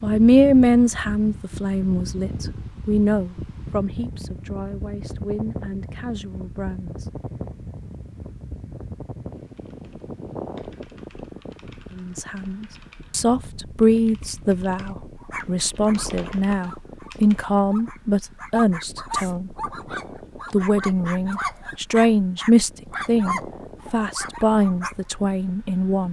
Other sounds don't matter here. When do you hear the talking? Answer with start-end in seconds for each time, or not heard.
0.0-6.9, 11.9-19.6, 20.5-26.0.